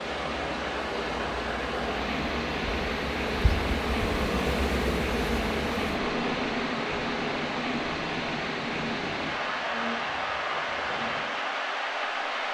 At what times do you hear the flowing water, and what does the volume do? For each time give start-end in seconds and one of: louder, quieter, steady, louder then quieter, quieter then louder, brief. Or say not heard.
0.0-12.5 steady.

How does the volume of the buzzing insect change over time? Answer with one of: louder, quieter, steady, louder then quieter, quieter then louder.
louder then quieter.